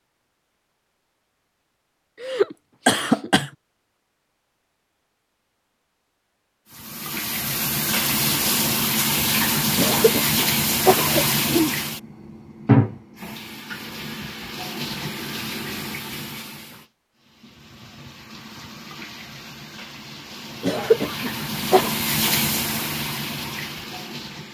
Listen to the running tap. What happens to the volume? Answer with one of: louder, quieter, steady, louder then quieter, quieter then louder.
quieter then louder.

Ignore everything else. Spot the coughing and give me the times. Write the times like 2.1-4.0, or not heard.
2.2-3.5, 9.8-11.8, 20.6-21.9.